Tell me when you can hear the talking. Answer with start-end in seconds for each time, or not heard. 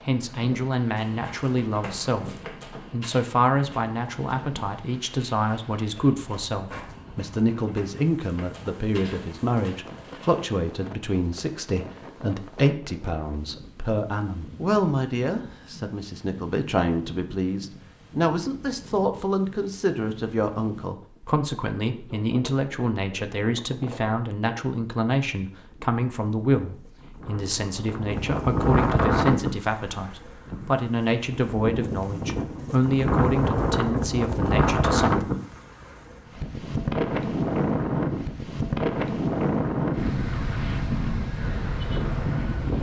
0.1-35.3.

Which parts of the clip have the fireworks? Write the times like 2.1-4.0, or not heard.
not heard.